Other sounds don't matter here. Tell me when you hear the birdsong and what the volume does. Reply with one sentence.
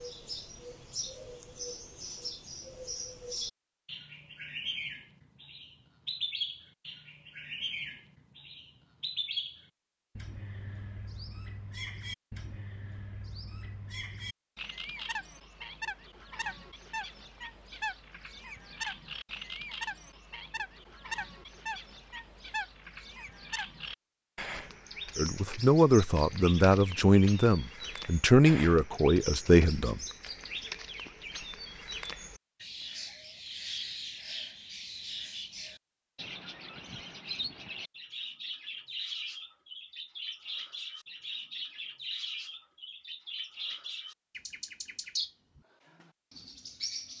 You can hear the birdsong from 0.0 to 47.1 s, at a steady volume.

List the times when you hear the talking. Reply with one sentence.
You can hear the talking from 25.1 to 30.0 s.